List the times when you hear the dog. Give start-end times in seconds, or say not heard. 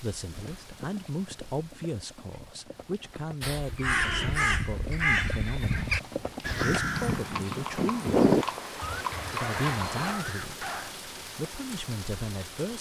9.3-10.9.